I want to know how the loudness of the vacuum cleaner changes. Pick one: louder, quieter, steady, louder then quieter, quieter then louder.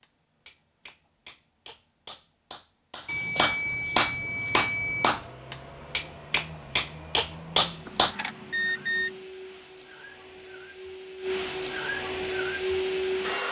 louder.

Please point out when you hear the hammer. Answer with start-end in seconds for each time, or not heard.
0.0-8.2.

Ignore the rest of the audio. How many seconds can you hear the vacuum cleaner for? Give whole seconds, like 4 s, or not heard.
9 s.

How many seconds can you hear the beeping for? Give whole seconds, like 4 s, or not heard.
3 s.